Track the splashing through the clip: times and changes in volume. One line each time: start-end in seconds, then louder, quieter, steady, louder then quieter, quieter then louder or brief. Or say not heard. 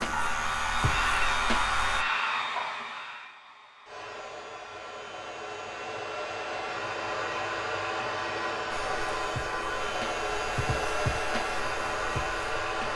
not heard.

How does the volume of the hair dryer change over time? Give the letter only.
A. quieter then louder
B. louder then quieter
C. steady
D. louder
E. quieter
A.